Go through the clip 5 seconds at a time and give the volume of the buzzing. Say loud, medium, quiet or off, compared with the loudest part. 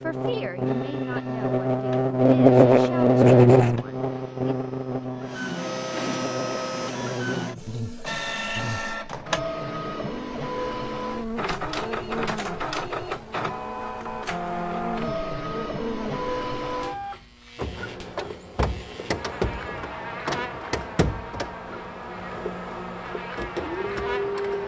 loud, quiet, quiet, quiet, quiet.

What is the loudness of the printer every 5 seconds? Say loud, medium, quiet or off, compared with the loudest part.
quiet, loud, loud, loud, loud.